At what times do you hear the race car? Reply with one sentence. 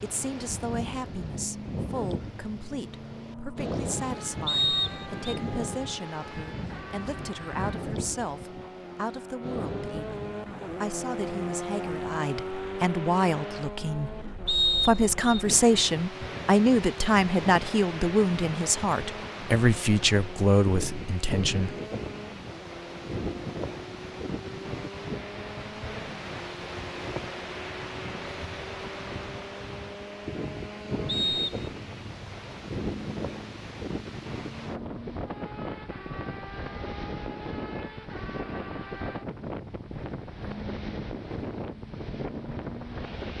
You can hear the race car from 0.0 to 43.3 s.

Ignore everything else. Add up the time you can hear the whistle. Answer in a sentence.
You can hear the whistle for 2 seconds altogether.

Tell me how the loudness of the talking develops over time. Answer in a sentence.
The volume of the talking goes up.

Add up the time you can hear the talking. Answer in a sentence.
You can hear the talking for 22 seconds altogether.